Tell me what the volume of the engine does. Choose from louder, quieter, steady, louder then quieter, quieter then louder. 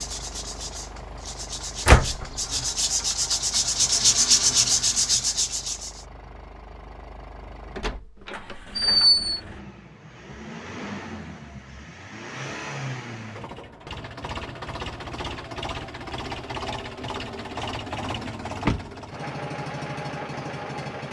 louder.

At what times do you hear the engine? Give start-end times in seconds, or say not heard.
0.0-21.0.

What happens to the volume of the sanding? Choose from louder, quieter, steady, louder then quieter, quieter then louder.
louder.